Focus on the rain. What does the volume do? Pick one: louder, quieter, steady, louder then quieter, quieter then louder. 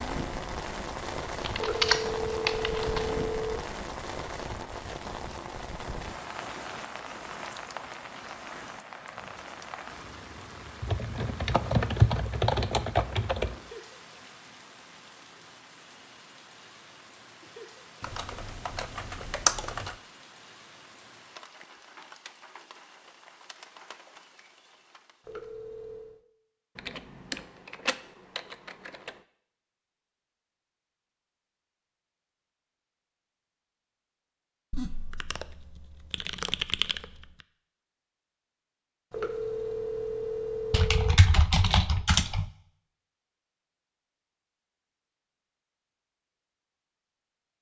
quieter.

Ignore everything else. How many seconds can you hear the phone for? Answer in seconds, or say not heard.
5 s.